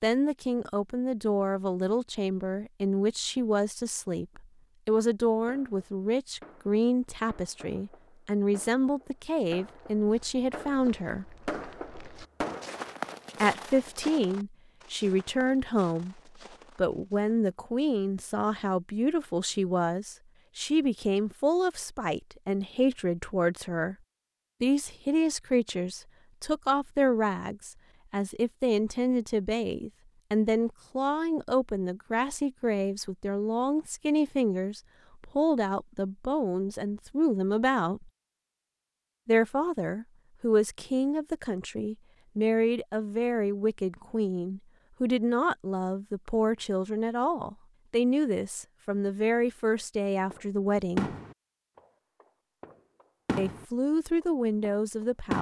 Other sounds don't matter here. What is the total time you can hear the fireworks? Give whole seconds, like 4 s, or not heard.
12 s.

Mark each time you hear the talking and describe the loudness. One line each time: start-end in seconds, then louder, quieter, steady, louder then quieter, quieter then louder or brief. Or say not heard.
0.0-11.2 steady
13.4-23.9 steady
24.6-38.1 steady
39.2-51.1 steady
53.4-55.3 brief.